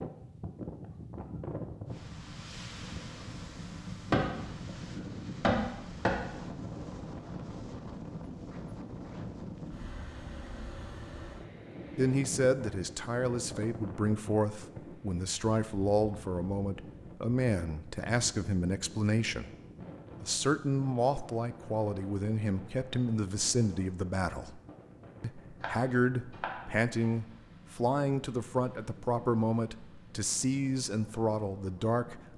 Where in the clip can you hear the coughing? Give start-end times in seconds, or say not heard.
not heard.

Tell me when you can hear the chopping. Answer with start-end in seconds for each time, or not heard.
4.1-6.2, 25.6-27.1.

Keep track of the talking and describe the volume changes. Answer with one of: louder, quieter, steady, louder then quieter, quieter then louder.
steady.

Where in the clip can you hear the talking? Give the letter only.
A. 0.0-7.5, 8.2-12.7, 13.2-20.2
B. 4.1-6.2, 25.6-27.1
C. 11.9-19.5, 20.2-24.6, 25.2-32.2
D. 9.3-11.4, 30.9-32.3
C.